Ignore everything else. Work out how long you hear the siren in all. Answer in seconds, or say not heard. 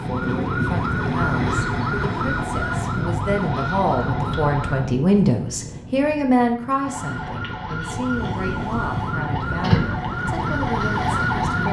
10 s.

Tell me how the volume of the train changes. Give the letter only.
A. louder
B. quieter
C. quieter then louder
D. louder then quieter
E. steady
C.